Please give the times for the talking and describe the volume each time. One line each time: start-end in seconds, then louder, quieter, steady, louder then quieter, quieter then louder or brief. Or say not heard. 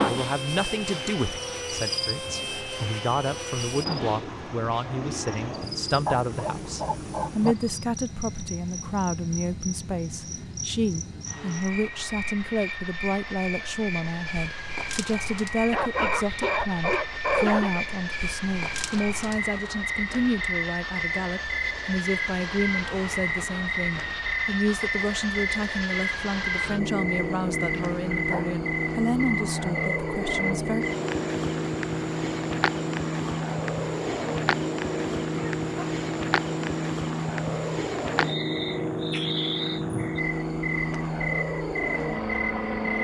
0.0-30.9 steady.